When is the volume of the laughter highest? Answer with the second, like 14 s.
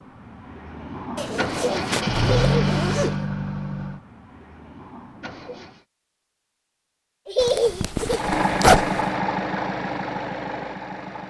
8 s.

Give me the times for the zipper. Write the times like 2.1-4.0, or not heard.
1.1-3.1, 7.4-9.0.